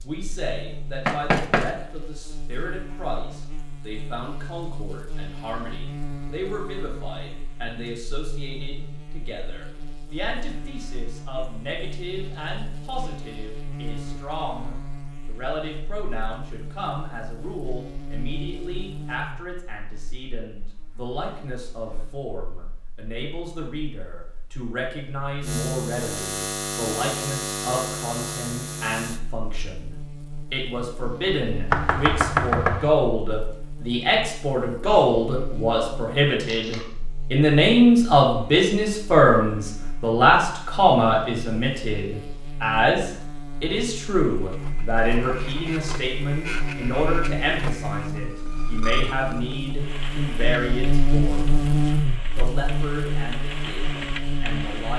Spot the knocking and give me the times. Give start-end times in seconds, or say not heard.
1.1-1.8, 31.7-32.9.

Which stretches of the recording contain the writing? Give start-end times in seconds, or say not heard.
not heard.